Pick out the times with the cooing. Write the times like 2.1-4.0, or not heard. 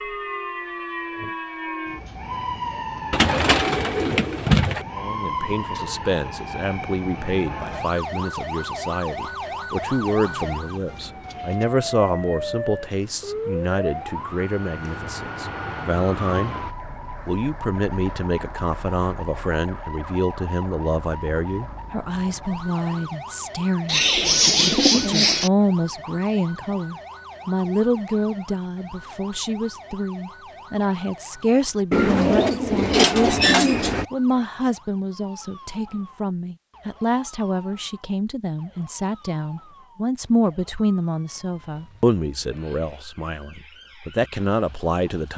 3.1-4.8, 23.9-25.5, 31.9-34.0.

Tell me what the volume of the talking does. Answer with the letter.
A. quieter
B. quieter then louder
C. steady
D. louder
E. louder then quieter
C.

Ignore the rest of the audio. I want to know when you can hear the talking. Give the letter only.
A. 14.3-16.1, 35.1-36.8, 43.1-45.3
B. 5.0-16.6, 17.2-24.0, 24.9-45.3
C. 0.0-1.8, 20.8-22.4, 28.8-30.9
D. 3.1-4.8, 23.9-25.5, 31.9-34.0
B.